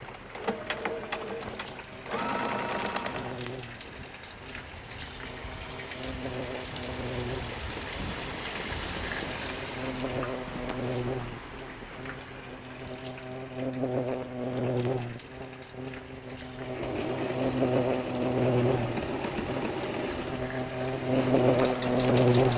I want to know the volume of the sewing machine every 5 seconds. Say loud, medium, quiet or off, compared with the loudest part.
loud, off, off, loud, loud.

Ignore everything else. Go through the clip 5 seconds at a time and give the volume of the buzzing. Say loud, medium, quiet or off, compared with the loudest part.
quiet, quiet, medium, medium, loud.